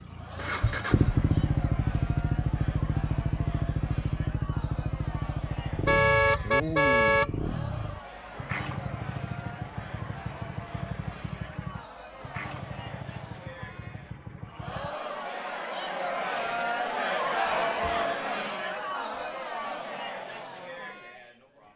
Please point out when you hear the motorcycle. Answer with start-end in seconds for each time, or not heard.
0.0-14.9.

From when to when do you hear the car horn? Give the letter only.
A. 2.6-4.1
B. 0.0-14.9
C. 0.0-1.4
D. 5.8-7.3
D.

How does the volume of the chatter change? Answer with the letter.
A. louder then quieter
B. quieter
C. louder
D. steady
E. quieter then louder
C.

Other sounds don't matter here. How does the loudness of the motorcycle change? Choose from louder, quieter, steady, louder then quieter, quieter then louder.
quieter.